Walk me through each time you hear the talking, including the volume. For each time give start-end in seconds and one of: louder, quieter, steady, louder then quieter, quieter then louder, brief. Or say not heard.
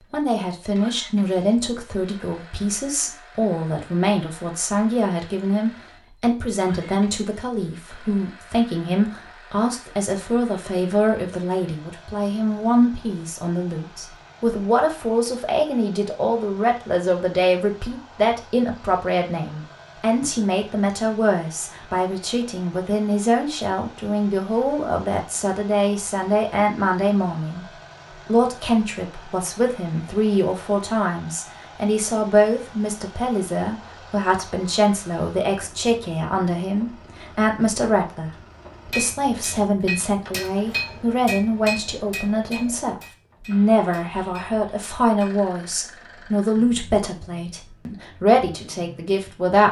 0.1-49.6 steady.